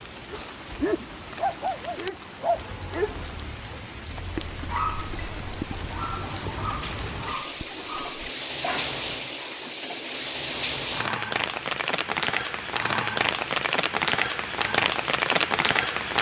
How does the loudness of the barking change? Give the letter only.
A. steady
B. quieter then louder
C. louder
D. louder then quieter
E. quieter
E.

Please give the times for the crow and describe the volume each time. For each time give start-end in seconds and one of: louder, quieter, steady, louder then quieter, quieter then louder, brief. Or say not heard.
not heard.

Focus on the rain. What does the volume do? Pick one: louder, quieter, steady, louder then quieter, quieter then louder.
louder.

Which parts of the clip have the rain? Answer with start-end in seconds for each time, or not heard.
0.0-16.1.